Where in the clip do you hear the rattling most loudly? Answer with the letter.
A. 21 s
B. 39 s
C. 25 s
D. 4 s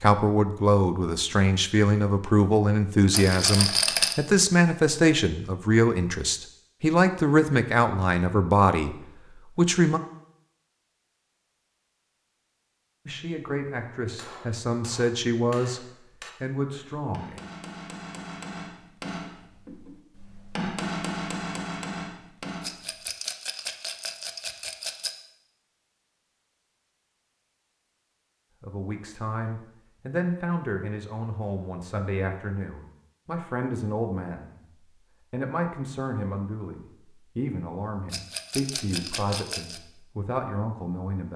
D.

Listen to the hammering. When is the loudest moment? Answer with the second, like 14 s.
21 s.